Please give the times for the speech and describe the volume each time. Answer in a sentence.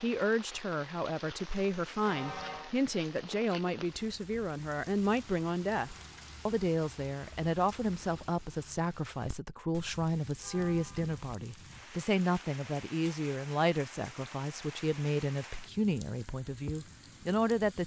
The speech can be heard from 0.0 to 17.8 s, at a steady volume.